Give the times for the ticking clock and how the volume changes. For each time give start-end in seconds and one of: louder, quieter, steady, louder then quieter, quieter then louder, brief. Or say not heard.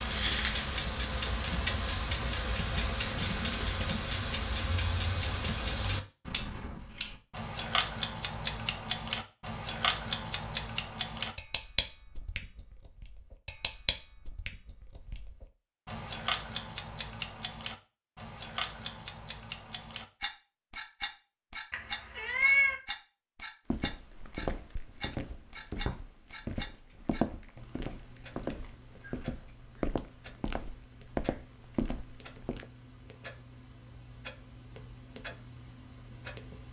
0.0-36.6 quieter.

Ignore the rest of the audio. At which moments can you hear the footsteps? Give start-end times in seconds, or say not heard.
23.7-32.6.